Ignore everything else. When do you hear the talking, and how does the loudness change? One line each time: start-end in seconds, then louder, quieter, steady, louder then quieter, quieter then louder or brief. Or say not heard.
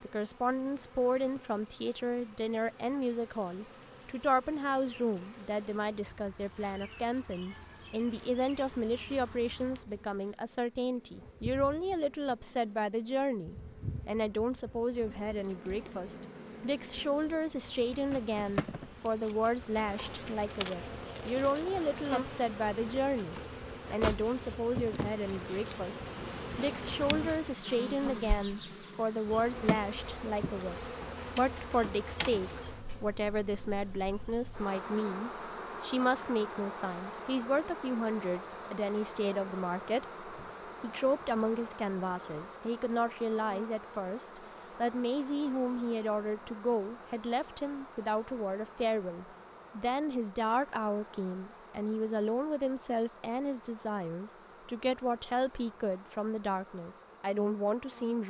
0.0-30.8 steady
31.4-58.2 steady.